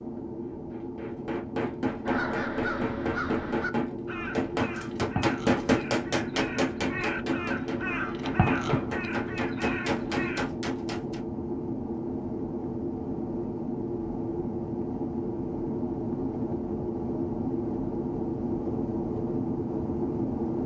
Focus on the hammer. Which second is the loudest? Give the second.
6 s.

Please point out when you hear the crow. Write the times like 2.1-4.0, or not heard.
2.0-10.4.